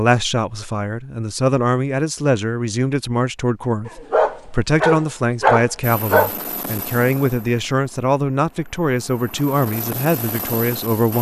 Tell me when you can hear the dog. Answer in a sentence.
You can hear the dog from 3.9 to 6.3 s.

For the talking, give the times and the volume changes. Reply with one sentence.
The talking can be heard from 0.0 to 11.1 s, at a steady volume.